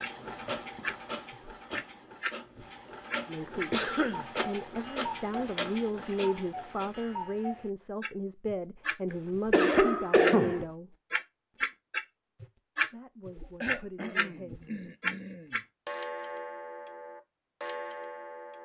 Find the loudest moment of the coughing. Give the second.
10 s.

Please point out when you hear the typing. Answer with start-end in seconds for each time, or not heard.
not heard.